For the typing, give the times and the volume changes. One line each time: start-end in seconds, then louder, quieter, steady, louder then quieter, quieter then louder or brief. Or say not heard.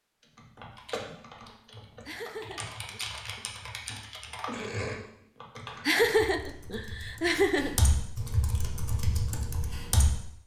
0.2-10.2 louder.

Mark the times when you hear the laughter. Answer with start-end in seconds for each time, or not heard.
2.0-3.0, 5.8-7.8.